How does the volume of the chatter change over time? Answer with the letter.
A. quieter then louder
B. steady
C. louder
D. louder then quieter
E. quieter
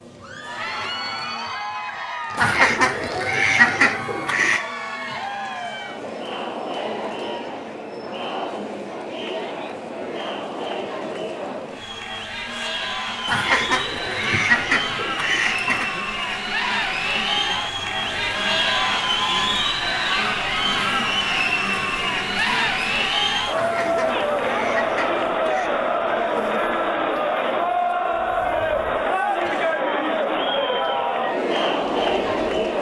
C.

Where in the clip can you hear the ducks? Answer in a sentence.
You can hear the ducks from 2.4 to 4.6 s, from 13.2 to 15.9 s and from 23.5 to 25.7 s.